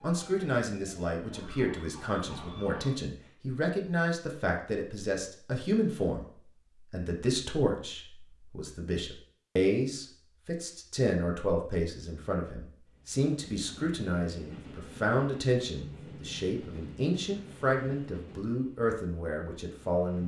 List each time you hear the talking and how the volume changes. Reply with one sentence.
You can hear the talking from 0.0 to 20.2 s, at a steady volume.